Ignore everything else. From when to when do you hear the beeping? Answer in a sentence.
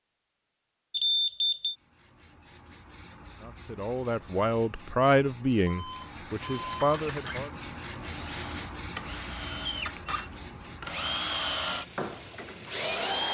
The beeping can be heard from 0.9 to 1.8 s, from 5.7 to 7.0 s and from 9.9 to 10.5 s.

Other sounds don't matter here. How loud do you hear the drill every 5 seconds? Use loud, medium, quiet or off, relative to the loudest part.
off, medium, loud.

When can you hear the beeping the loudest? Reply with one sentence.
The loudest moment of the beeping is at 1 second.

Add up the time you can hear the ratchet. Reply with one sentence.
The ratchet can't be heard in this clip.